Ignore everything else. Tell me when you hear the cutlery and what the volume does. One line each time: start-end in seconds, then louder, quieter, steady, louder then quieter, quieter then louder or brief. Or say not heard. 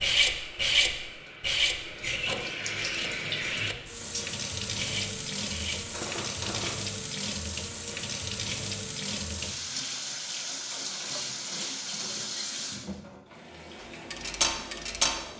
0.0-6.8 quieter
13.8-15.2 brief.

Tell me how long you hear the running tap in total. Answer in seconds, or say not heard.
15 s.